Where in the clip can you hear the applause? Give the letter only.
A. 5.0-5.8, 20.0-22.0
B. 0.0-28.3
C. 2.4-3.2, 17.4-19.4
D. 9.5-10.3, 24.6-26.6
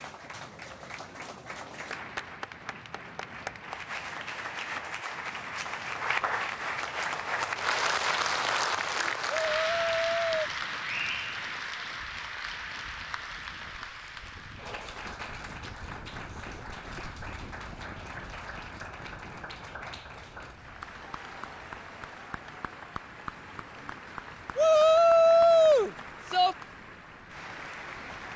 B.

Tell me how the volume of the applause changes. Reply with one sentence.
The volume of the applause goes up, then down.